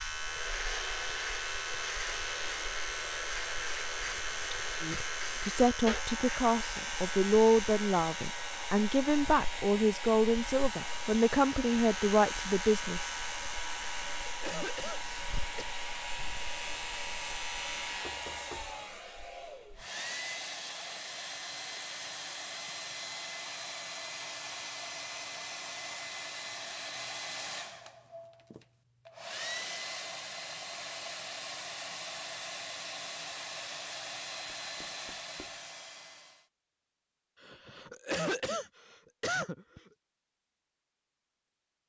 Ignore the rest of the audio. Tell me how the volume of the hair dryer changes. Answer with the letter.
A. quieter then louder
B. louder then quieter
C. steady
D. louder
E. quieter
C.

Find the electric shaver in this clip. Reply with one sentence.
You can hear the electric shaver from 0.0 to 18.3 s.